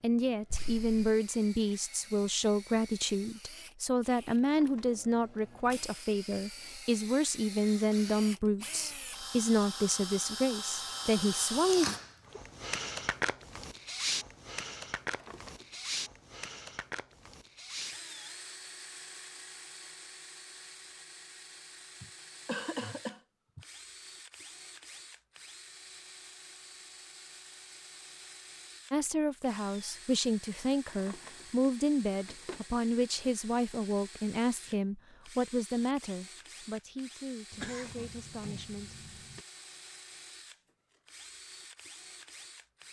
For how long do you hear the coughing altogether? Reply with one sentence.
You can hear the coughing for 4 seconds altogether.